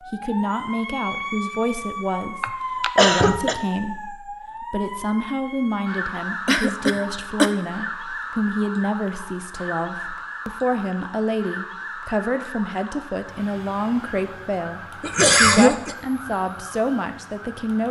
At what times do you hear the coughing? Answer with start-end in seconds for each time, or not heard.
2.4-3.5, 6.5-7.5, 15.0-15.9.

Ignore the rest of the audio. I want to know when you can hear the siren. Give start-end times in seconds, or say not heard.
0.0-17.8.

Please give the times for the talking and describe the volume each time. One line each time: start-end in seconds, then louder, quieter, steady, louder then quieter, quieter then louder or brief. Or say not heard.
0.1-14.8 steady
15.4-17.8 brief.